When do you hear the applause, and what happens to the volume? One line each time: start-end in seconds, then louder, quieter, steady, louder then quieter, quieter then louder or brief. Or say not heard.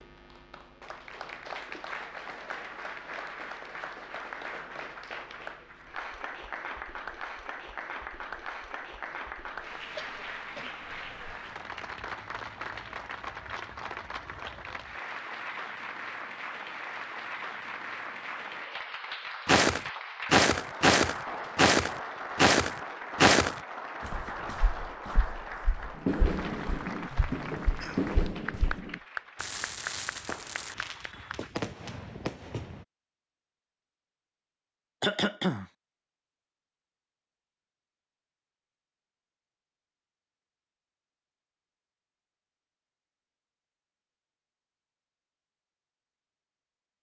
0.0-31.5 steady.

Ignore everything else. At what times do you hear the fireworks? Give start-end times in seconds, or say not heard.
25.9-32.9.